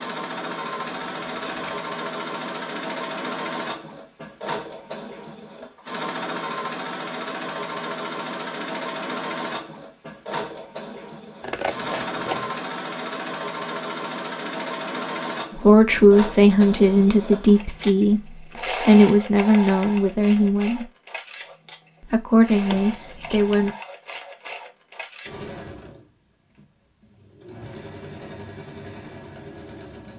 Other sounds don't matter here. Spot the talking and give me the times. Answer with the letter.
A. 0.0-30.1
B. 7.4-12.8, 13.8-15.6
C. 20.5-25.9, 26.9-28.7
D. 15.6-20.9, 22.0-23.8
D.